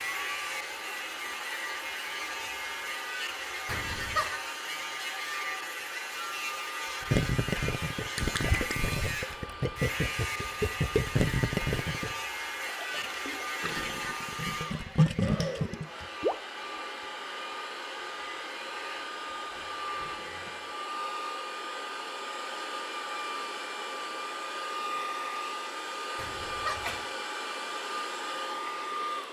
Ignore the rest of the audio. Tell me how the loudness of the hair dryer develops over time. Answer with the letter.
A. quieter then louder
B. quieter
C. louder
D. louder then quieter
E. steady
C.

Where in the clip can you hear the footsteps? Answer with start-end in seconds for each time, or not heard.
not heard.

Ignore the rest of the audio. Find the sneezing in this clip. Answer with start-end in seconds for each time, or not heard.
3.6-4.2, 26.1-27.1.